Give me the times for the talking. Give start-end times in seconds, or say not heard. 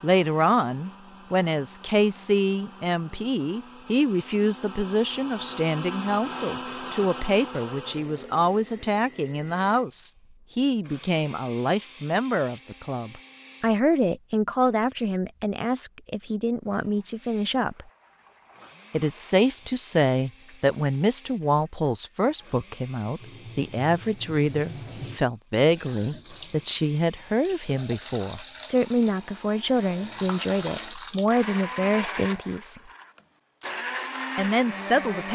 0.0-17.9, 18.9-32.8, 34.4-35.3.